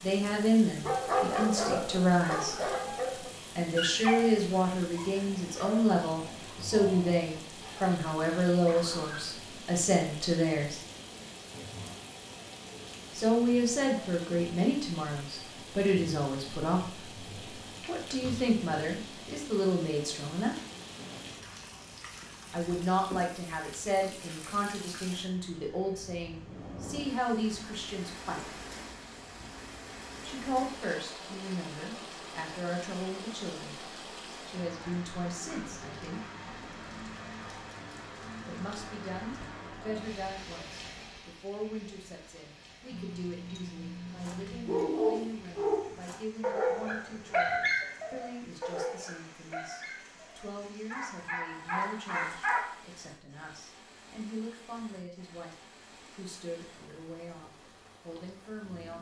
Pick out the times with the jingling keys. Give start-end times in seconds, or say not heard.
17.6-18.6, 42.9-44.9.